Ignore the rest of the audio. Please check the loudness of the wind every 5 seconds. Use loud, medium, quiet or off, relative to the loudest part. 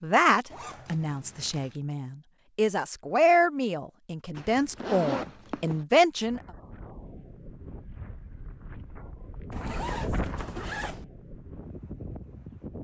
off, medium, loud.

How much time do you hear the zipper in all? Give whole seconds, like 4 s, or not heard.
4 s.